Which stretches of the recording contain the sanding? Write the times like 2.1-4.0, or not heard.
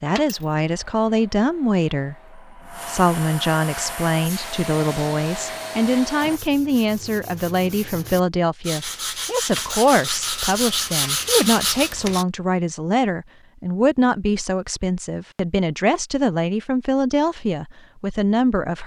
3.8-12.2.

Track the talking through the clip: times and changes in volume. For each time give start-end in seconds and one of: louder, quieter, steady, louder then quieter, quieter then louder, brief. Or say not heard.
0.0-18.8 steady.